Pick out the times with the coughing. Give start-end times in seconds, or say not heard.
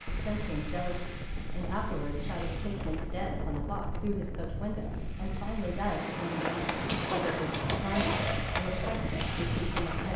6.8-8.4.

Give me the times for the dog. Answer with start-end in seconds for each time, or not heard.
not heard.